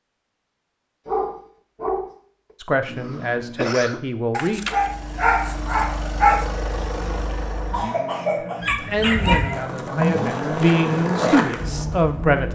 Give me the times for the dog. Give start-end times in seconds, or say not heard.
1.1-2.1, 4.3-6.5, 8.6-9.7.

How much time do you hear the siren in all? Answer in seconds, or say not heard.
not heard.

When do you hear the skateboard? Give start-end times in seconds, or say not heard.
8.9-12.2.